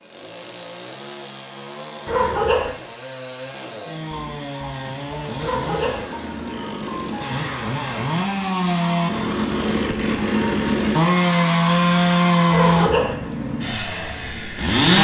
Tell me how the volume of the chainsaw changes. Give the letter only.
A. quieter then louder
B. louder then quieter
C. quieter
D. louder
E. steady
D.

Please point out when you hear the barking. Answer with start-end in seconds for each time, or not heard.
2.0-2.7, 5.3-6.0, 12.5-13.2.